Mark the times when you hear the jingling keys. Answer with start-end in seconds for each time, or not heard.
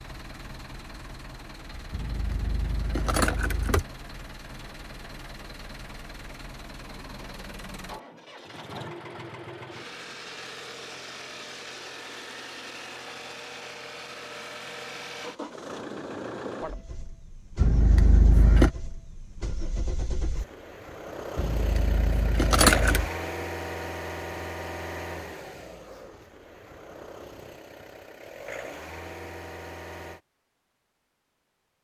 1.9-3.9, 17.6-18.8, 21.4-23.1.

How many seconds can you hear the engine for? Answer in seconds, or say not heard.
30 s.